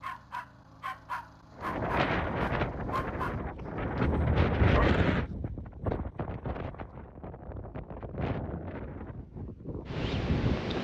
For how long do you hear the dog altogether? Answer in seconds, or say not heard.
5 s.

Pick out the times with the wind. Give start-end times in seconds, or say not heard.
1.6-10.7.